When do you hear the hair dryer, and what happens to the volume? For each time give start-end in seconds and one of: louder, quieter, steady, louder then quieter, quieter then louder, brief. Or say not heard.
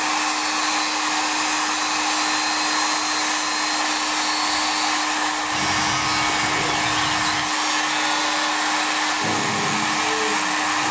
0.0-10.8 steady.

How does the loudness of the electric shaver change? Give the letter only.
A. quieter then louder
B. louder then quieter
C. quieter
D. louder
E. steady
E.